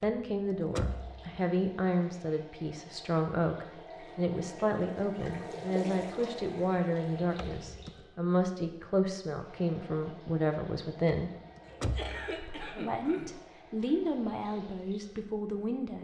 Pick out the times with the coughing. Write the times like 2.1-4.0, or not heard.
11.7-13.3.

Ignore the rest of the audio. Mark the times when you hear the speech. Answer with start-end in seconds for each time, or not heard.
0.0-11.3, 12.3-15.9.